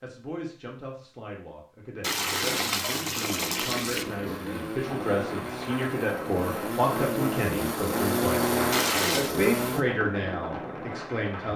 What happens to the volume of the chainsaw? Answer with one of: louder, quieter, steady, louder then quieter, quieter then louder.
louder.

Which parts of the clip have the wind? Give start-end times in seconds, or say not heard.
4.8-11.5.